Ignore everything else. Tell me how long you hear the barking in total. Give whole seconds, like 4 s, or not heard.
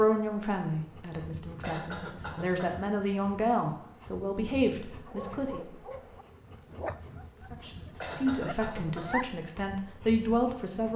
4 s.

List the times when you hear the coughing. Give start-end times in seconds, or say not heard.
1.6-2.9, 8.0-9.2.